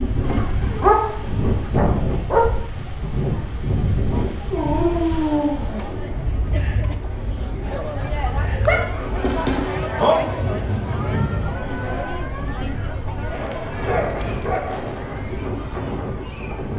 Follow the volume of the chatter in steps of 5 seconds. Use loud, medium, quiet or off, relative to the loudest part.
medium, loud, loud, medium.